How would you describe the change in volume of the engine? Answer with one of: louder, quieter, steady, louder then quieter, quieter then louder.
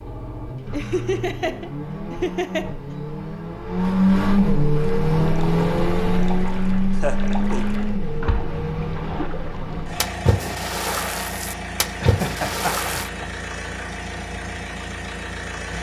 louder then quieter.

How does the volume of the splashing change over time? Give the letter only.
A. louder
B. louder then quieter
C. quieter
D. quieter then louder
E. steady
A.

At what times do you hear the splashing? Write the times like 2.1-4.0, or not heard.
4.7-13.1.